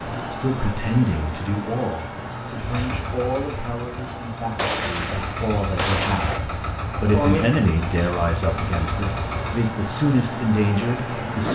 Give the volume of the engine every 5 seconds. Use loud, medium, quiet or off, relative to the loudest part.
medium, loud, off.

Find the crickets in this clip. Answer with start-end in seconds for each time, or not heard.
0.0-11.5.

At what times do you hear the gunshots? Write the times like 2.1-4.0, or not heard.
4.5-6.4.